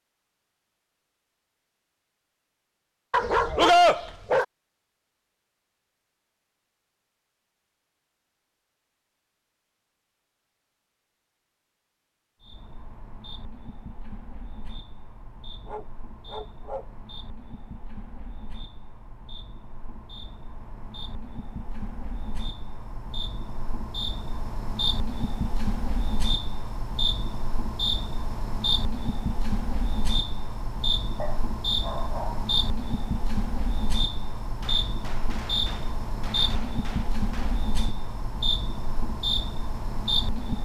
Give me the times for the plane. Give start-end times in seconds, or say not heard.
not heard.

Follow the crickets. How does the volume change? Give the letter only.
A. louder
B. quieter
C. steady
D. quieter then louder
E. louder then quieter
A.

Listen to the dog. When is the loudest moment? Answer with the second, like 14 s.
4 s.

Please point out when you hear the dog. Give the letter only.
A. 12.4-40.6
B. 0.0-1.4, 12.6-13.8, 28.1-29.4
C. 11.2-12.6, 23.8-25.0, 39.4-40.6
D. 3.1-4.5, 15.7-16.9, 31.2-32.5
D.